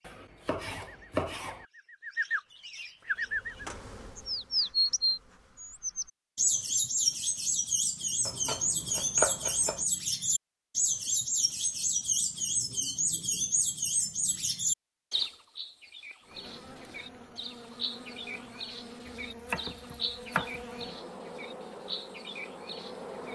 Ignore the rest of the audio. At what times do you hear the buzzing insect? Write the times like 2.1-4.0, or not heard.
3.0-5.8, 16.2-23.3.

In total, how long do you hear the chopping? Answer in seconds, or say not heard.
5 s.